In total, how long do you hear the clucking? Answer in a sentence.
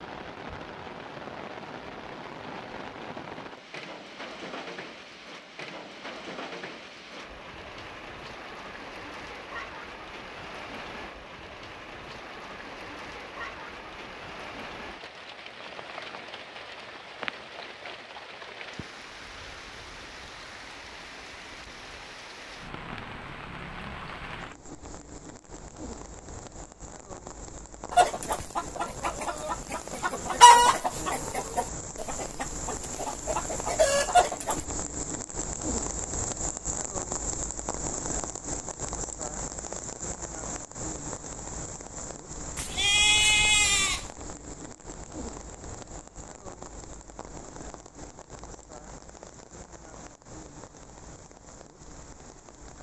You can hear the clucking for 7 seconds altogether.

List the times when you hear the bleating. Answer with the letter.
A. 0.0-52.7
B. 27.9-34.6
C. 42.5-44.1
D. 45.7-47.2
C.